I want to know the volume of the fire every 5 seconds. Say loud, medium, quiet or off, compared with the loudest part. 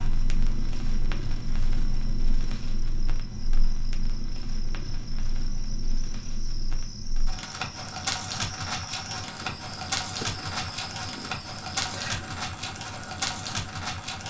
medium, loud, loud.